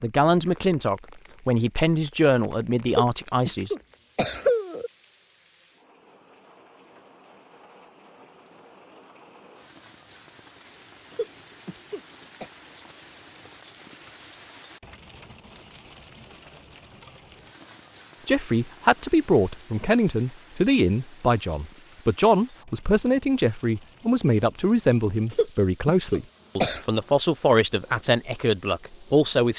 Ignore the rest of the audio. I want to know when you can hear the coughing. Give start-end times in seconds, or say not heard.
2.9-4.9, 11.1-12.5, 25.3-26.9.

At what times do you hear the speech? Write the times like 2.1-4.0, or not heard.
0.0-3.8, 18.2-29.5.